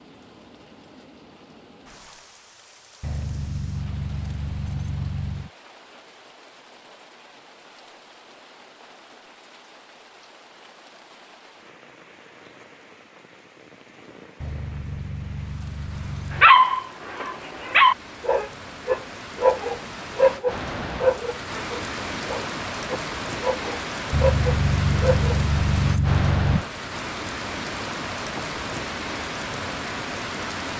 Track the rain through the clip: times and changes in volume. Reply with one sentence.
You can hear the rain from 0.0 to 30.7 s, getting louder.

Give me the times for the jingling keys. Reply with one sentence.
You can hear the jingling keys from 3.0 to 5.5 s, from 14.4 to 16.5 s and from 24.1 to 26.6 s.